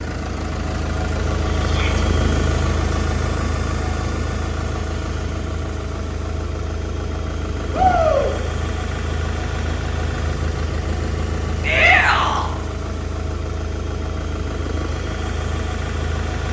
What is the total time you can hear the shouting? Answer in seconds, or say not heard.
2 s.